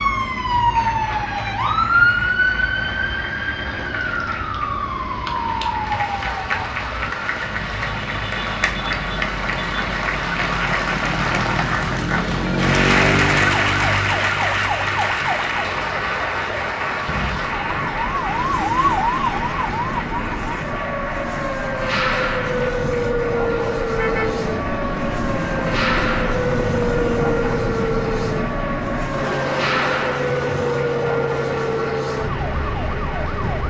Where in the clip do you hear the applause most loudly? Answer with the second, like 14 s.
13 s.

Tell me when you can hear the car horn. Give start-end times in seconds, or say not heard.
23.9-24.3.